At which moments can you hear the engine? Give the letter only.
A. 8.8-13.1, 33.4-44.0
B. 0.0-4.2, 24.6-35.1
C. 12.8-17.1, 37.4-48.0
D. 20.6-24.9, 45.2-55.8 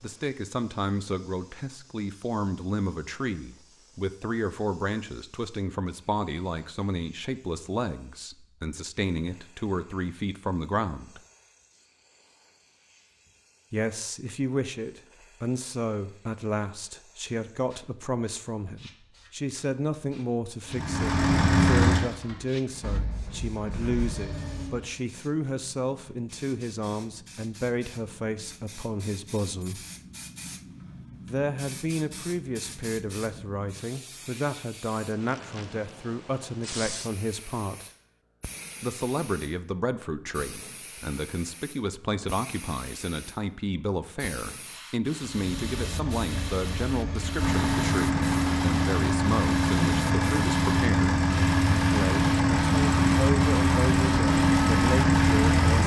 D.